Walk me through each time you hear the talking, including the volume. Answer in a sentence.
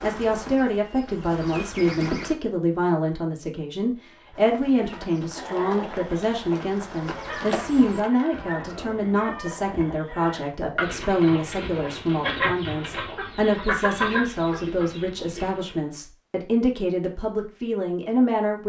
The talking can be heard from 0.0 to 18.6 s, at a steady volume.